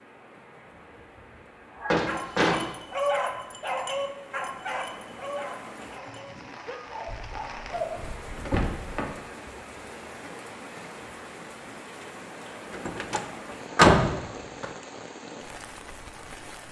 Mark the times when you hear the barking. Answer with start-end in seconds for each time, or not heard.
1.7-8.0.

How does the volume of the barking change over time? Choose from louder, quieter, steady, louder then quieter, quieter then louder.
quieter.